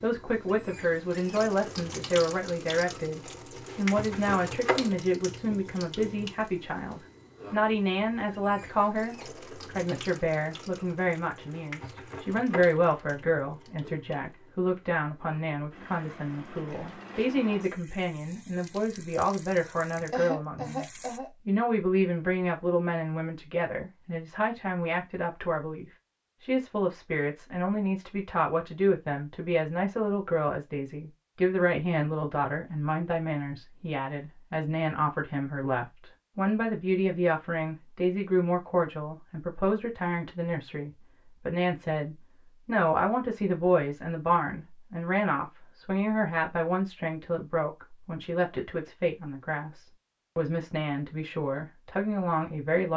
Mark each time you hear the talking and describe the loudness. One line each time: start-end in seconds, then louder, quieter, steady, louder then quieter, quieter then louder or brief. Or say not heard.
0.0-20.9 steady
21.4-52.9 steady.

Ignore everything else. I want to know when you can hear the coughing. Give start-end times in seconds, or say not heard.
20.1-21.3.